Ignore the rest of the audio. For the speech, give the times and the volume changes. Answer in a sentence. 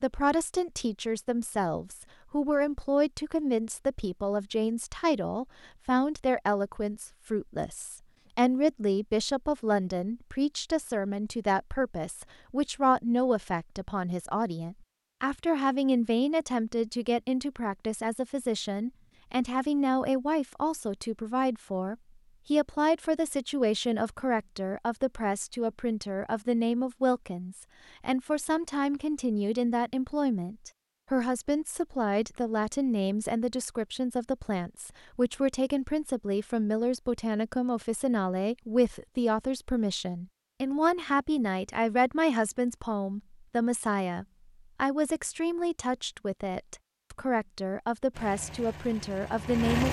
The speech can be heard from 0.0 to 49.8 s, at a steady volume.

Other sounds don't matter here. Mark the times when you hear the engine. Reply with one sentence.
You can hear the engine from 48.1 to 49.8 s.